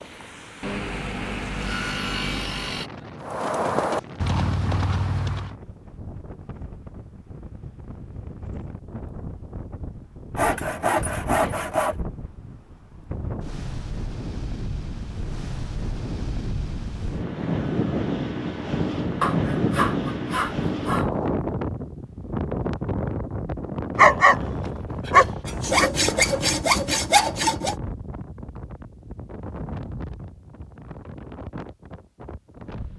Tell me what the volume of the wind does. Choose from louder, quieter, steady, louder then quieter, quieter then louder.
louder then quieter.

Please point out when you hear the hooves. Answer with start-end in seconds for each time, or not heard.
3.2-5.5.